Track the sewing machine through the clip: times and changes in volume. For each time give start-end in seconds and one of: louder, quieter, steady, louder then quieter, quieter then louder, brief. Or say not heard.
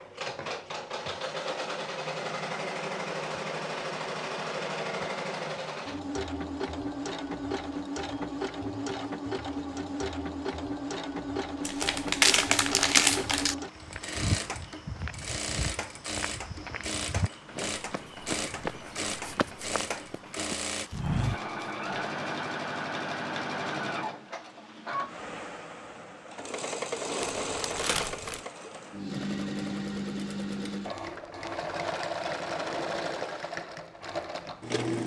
0.0-35.0 steady.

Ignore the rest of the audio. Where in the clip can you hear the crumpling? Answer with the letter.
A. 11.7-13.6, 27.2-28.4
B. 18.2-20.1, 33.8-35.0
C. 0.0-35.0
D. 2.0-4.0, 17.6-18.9
A.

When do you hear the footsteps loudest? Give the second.
21 s.